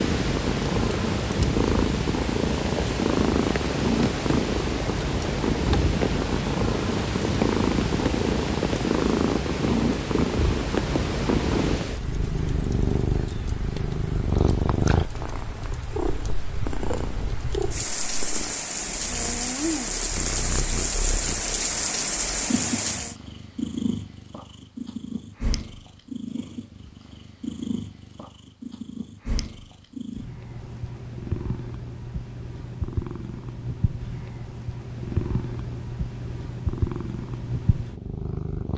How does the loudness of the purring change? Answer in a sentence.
The loudness of the purring goes down.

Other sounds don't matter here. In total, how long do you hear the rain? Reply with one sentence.
The rain can be heard for 23 seconds in total.